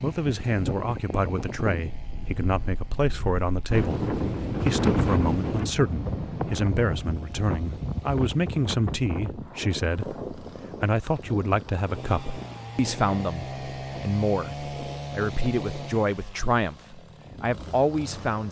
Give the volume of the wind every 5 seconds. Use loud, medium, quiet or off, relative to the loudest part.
loud, loud, medium, quiet.